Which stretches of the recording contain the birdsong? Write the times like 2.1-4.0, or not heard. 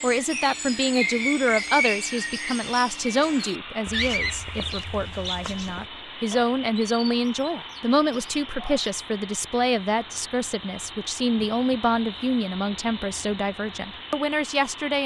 0.0-8.9.